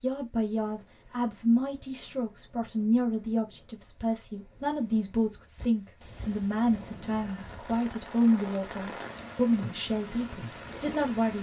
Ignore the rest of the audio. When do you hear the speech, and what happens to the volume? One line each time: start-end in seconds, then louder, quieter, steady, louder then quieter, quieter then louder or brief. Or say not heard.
0.0-11.3 steady.